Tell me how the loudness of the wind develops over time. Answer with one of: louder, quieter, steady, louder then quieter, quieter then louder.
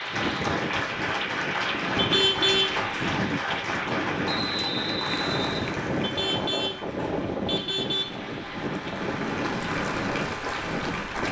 steady.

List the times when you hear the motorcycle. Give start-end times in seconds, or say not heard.
not heard.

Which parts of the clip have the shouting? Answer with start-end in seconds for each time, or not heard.
not heard.